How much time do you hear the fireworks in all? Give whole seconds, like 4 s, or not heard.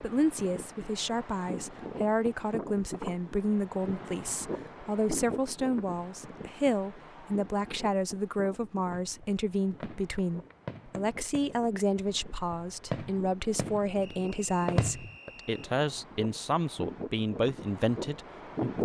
6 s.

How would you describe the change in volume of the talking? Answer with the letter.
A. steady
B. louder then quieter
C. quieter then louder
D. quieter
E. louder
A.